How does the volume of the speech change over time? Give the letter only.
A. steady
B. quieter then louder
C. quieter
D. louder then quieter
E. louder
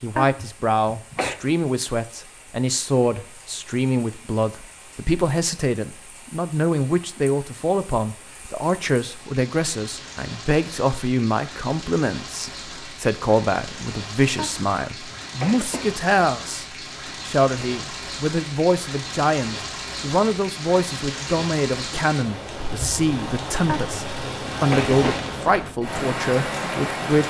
A.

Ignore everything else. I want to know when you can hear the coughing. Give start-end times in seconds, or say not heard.
0.1-1.4, 14.3-15.9, 23.6-25.2.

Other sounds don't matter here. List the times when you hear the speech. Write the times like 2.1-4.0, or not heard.
0.0-27.2.